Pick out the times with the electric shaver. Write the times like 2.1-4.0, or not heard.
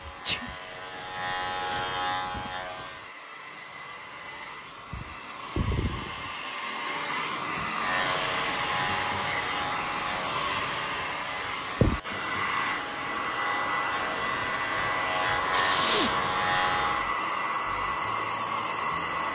0.0-3.1, 7.8-17.1.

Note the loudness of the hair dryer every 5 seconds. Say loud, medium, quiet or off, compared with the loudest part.
quiet, loud, loud, loud.